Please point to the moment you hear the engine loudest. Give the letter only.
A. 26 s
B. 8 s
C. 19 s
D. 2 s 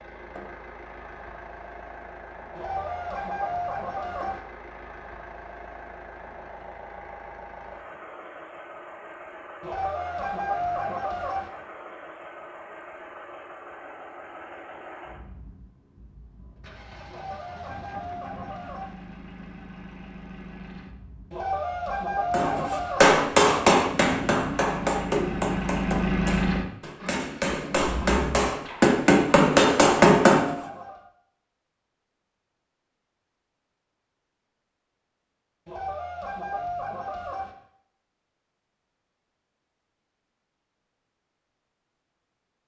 A.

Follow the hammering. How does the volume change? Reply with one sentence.
The volume of the hammering goes down, then up.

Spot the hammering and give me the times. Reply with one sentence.
The hammering can be heard from 22.3 to 30.6 s.